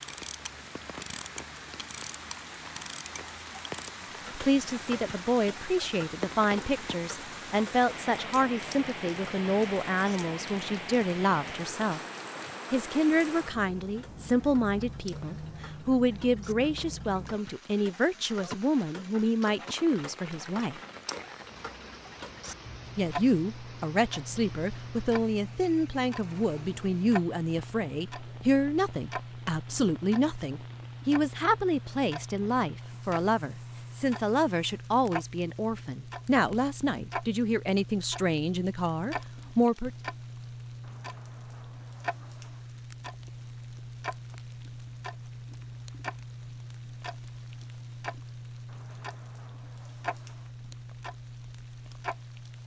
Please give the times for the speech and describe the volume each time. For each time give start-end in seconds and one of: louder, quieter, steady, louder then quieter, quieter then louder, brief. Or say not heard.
4.3-12.0 steady
12.7-20.8 steady
22.9-39.9 steady.